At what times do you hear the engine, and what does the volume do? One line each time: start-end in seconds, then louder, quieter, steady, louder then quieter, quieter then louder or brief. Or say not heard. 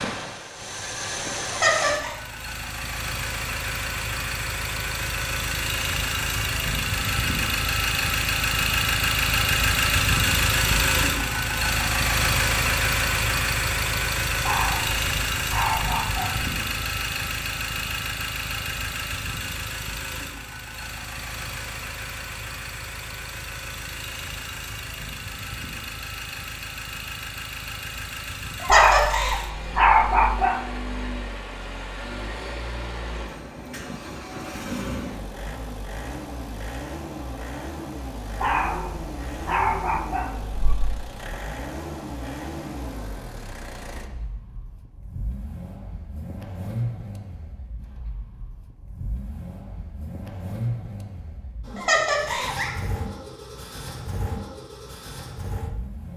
0.0-56.1 quieter.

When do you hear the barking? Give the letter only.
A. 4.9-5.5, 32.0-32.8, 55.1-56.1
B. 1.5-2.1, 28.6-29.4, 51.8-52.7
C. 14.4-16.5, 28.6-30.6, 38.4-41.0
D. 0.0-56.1
C.